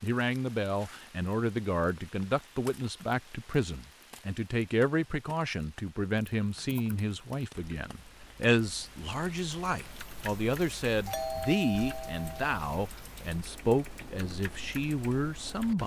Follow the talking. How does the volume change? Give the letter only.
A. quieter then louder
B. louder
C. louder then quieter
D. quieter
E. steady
E.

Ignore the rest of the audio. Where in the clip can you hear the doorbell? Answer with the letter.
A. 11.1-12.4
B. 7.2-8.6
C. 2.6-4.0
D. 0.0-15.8
A.